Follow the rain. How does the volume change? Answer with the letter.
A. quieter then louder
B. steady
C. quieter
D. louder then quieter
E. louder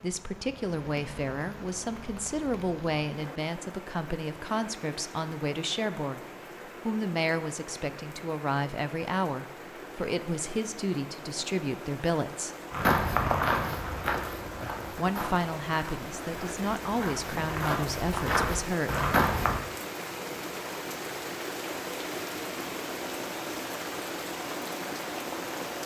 E.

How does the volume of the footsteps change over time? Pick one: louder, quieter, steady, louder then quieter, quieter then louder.
quieter then louder.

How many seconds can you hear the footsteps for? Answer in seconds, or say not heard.
7 s.